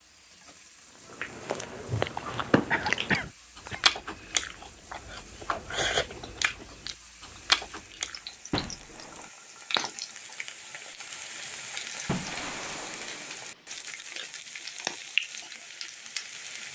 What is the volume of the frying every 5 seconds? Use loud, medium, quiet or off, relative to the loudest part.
quiet, medium, medium, loud.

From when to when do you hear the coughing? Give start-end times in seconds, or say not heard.
2.7-3.9.